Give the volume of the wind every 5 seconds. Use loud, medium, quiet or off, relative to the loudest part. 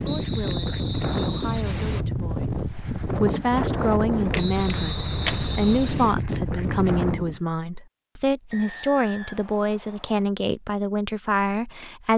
loud, loud, off.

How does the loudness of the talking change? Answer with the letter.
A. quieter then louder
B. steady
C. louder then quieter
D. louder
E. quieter
D.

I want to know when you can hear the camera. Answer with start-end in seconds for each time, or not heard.
4.3-6.0.